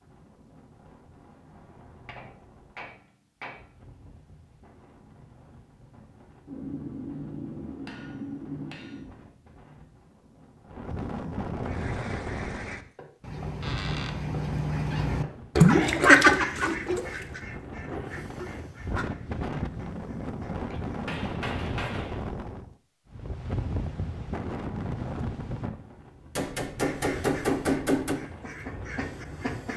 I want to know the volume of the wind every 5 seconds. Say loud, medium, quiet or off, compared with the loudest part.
quiet, quiet, loud, loud, loud, medium.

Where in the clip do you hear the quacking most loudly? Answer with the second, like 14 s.
16 s.